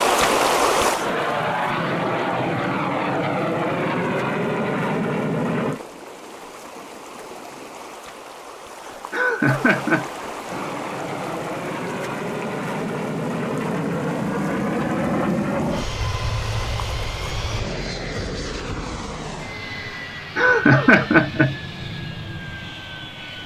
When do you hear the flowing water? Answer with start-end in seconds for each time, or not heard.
0.0-17.6.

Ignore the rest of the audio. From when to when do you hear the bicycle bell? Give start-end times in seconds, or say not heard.
not heard.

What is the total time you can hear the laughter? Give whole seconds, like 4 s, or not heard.
2 s.